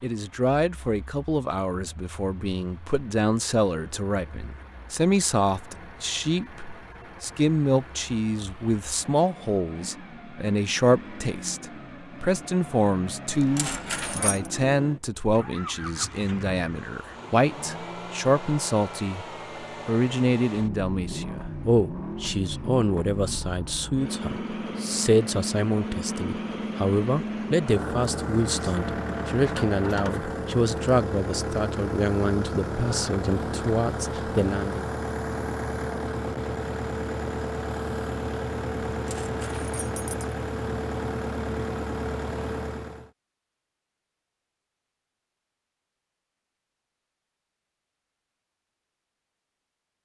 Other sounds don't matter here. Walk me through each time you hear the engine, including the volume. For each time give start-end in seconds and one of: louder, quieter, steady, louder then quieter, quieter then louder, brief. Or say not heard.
0.0-43.1 louder.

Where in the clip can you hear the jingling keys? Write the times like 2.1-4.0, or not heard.
13.2-14.5, 39.0-40.4.